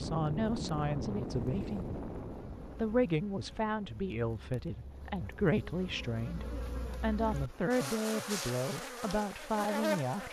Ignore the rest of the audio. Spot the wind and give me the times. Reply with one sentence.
The wind can be heard from 0.0 to 6.9 s.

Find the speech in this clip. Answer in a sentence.
The speech can be heard from 0.0 to 2.0 s and from 2.8 to 10.2 s.